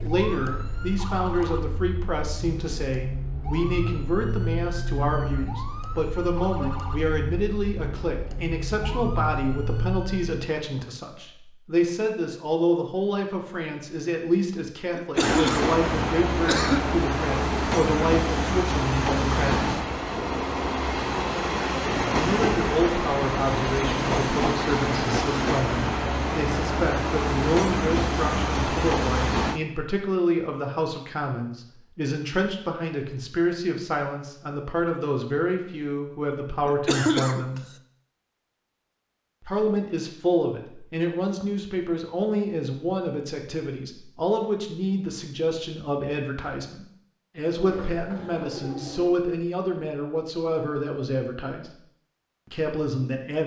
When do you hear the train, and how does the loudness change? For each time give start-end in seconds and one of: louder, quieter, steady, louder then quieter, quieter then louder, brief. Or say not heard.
15.2-29.6 steady.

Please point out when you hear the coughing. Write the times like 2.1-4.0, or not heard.
14.9-16.9, 36.6-37.6.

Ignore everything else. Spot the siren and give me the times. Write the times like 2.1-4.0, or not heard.
0.0-10.6.